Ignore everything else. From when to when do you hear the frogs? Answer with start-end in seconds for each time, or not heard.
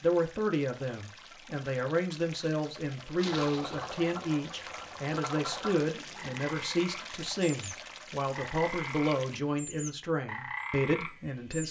3.1-11.6.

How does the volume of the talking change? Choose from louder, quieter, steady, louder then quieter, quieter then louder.
steady.